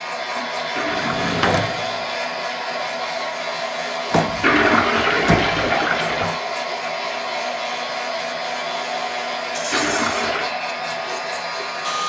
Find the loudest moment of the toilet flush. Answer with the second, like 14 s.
5 s.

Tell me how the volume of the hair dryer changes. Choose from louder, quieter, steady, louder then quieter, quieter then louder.
steady.